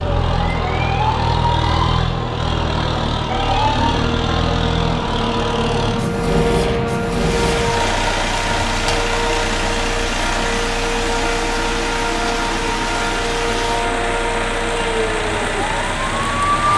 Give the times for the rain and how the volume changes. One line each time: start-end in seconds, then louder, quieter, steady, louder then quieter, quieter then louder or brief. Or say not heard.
7.1-16.7 steady.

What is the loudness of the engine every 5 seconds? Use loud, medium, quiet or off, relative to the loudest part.
loud, loud, medium, medium.